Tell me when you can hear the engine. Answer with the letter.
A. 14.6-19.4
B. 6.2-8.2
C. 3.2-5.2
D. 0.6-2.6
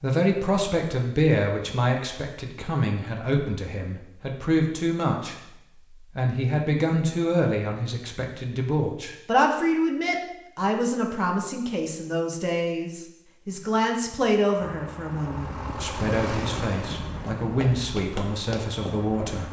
A.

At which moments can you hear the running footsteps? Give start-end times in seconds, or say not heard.
17.4-19.4.